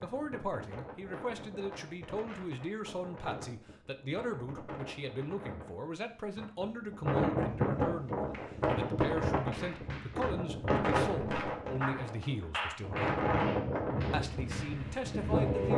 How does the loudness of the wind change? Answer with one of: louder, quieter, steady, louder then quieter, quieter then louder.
louder.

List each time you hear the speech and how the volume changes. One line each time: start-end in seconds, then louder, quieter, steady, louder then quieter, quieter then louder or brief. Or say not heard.
0.0-13.1 steady
14.1-15.7 brief.